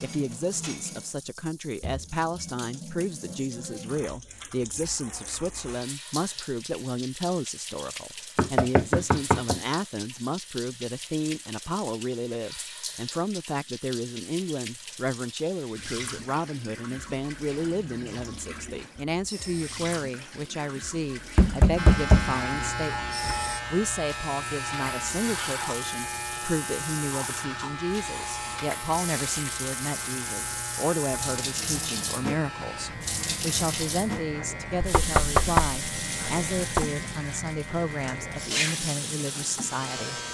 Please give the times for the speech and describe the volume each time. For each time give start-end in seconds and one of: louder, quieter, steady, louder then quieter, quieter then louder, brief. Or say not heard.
0.0-40.2 steady.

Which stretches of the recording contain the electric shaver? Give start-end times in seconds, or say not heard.
21.8-40.2.